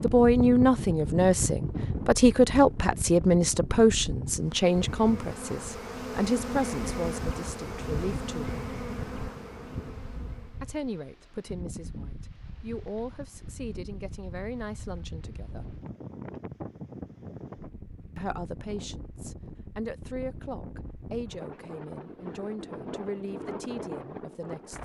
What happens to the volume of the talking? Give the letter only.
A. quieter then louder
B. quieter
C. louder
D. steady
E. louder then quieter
B.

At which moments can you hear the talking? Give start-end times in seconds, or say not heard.
0.0-8.6, 10.6-15.8, 18.1-24.7.